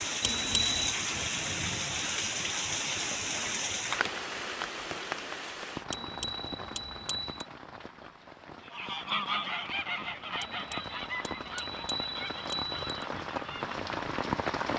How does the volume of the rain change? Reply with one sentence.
The loudness of the rain goes down, then up.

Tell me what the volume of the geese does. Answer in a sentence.
The volume of the geese goes down.